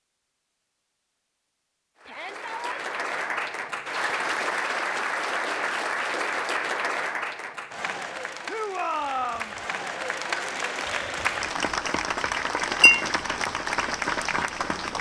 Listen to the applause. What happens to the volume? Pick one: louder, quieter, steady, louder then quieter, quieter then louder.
quieter then louder.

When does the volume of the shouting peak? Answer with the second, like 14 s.
9 s.